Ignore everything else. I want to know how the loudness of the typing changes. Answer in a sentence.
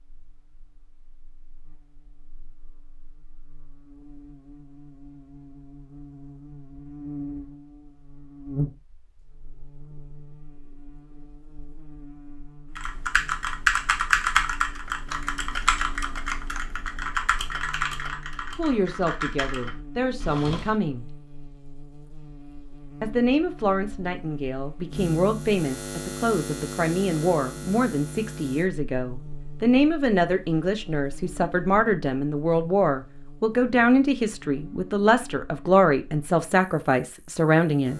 The volume of the typing goes down.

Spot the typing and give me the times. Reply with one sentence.
The typing can be heard from 12.8 to 20.8 s.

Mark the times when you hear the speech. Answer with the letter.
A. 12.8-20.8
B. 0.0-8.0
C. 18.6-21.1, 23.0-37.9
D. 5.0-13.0
C.